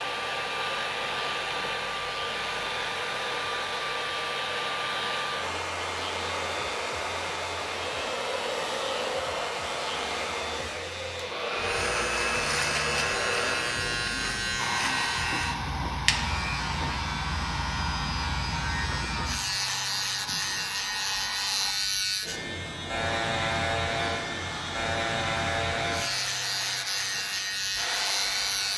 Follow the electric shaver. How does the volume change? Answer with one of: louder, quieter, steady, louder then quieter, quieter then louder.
louder.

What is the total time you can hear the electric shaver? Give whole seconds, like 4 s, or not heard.
29 s.